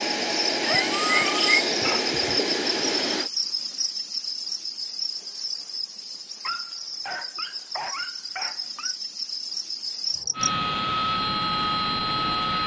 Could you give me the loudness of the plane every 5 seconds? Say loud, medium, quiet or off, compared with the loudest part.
loud, off, loud.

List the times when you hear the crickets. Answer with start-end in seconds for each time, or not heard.
0.0-10.5.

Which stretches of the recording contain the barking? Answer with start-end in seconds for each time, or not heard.
0.6-2.5, 6.4-8.9.